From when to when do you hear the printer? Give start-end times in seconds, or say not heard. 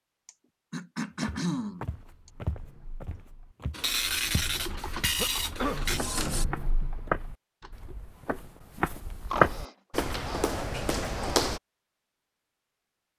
3.7-6.5.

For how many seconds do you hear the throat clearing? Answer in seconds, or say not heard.
5 s.